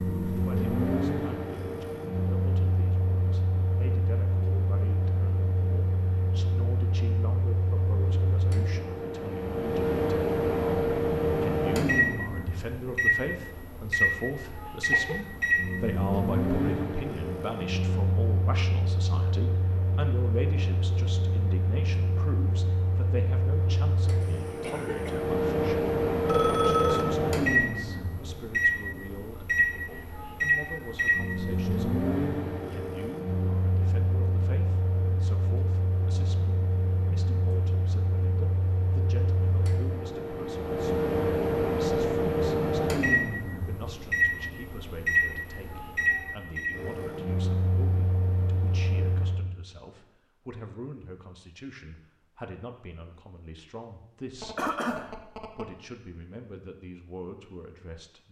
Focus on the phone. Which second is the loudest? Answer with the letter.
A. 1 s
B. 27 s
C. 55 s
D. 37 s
B.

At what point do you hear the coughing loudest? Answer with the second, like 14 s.
55 s.